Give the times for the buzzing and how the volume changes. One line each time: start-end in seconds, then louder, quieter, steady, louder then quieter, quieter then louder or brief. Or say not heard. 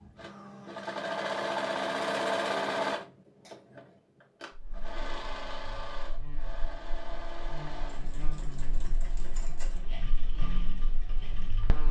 4.5-11.8 louder then quieter.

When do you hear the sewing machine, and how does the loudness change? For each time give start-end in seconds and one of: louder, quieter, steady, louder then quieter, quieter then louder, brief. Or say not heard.
0.0-11.8 quieter.